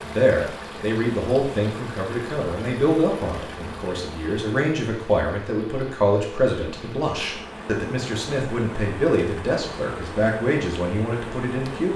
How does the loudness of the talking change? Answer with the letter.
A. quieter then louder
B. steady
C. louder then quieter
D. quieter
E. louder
B.